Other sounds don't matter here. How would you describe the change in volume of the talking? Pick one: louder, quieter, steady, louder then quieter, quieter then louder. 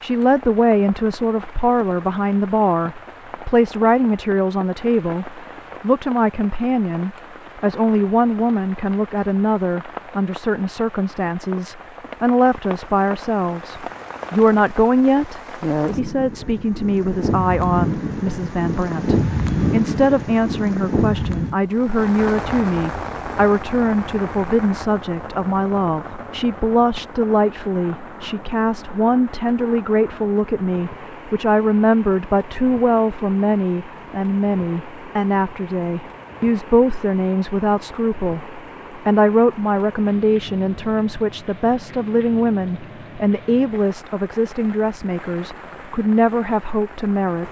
steady.